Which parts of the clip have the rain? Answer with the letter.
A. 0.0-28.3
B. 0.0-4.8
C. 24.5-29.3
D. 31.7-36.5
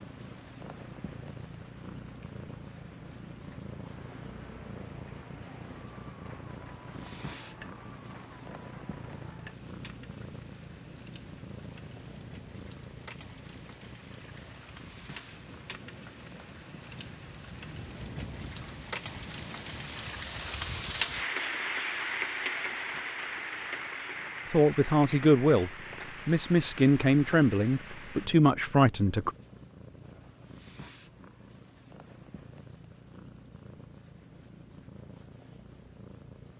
A.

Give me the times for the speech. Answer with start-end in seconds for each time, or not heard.
24.5-29.3.